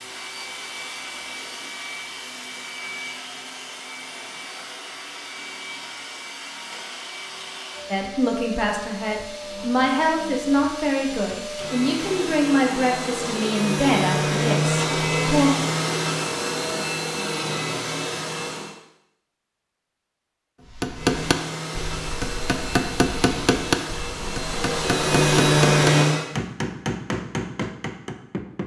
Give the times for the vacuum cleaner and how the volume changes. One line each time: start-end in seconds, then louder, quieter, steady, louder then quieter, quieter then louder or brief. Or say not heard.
0.0-18.8 louder
20.9-26.2 louder.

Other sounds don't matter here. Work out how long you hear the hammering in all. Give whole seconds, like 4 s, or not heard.
8 s.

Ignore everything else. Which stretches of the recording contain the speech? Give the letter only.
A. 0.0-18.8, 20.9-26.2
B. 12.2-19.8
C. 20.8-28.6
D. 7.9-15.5
D.